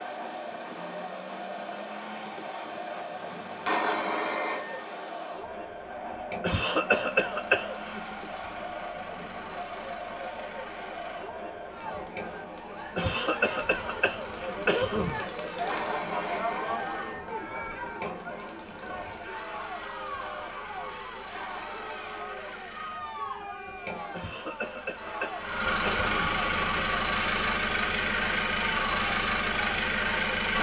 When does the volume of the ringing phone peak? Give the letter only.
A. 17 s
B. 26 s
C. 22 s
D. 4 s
D.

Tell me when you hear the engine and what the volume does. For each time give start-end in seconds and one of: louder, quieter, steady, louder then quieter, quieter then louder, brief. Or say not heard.
0.0-30.5 louder.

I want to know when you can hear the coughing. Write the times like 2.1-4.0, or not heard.
6.4-8.0, 12.9-15.2, 24.1-26.4.